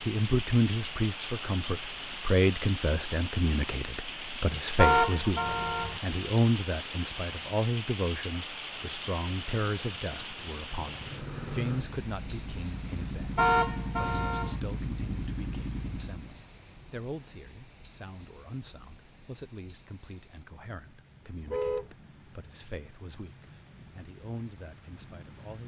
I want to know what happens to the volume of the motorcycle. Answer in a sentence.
The loudness of the motorcycle goes up.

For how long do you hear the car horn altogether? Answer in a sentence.
You can hear the car horn for 3 seconds altogether.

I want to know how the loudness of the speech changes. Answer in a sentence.
The volume of the speech goes down.